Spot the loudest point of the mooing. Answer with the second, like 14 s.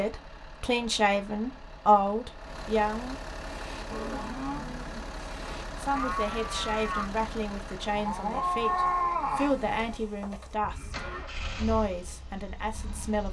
9 s.